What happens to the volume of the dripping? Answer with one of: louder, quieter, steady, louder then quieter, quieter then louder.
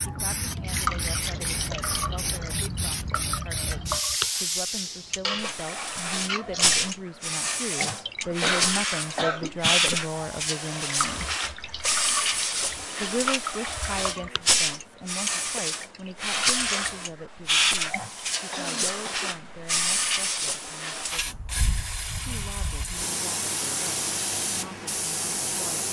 steady.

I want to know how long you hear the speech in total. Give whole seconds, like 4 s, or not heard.
23 s.